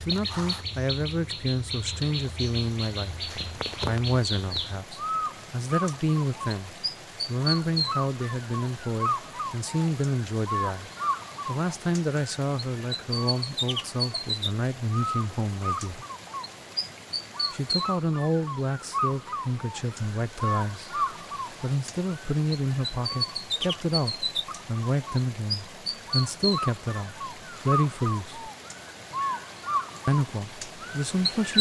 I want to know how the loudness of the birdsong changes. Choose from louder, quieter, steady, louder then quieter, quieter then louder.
steady.